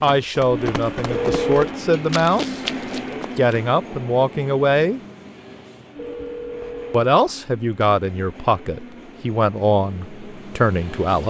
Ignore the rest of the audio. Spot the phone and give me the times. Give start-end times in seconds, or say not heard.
1.1-1.6, 6.0-7.1.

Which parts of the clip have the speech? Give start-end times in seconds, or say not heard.
0.0-2.6, 3.4-5.0, 6.9-11.2.